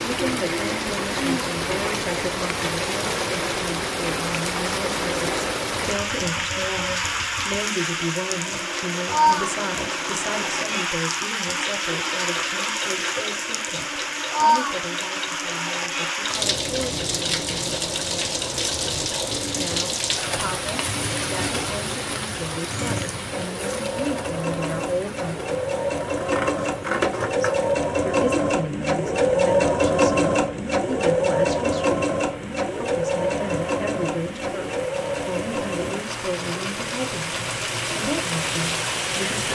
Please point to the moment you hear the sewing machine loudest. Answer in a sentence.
The loudest moment of the sewing machine is at 30 seconds.